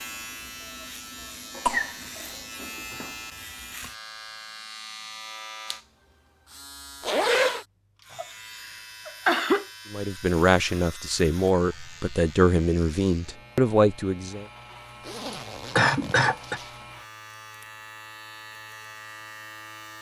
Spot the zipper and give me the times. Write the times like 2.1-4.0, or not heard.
7.0-7.7, 15.0-16.9.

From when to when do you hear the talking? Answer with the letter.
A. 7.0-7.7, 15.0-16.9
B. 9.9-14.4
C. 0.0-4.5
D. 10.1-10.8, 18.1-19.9
B.